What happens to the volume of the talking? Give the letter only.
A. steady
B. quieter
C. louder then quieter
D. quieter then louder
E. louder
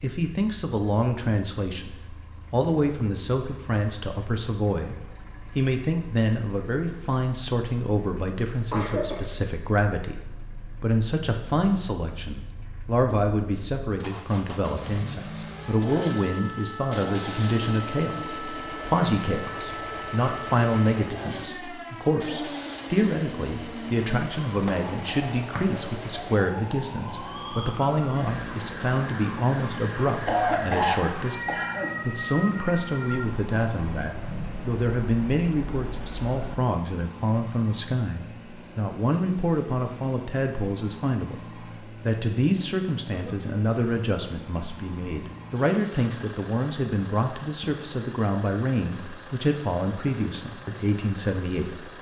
A.